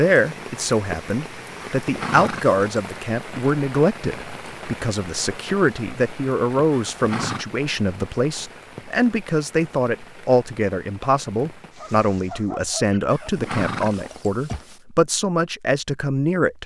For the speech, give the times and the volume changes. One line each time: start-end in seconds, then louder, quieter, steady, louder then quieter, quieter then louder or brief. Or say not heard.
0.0-16.6 steady.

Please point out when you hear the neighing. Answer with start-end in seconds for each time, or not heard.
1.8-2.9, 6.7-7.5, 13.1-14.8.